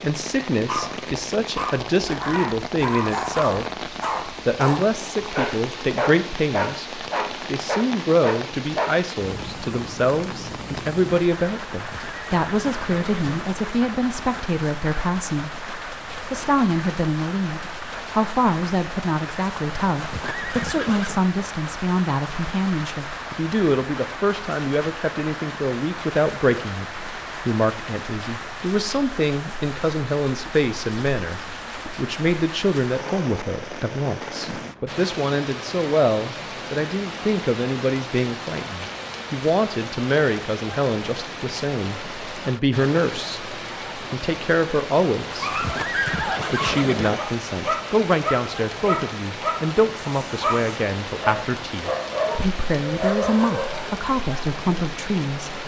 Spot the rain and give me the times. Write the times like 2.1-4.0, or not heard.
0.0-55.6.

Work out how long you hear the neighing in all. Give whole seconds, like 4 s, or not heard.
5 s.